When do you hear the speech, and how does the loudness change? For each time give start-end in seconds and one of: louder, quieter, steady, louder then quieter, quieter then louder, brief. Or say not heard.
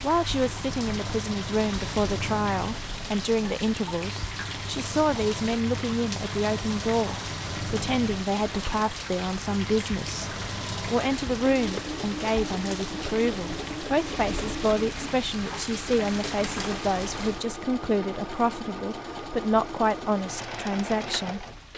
0.0-21.4 steady.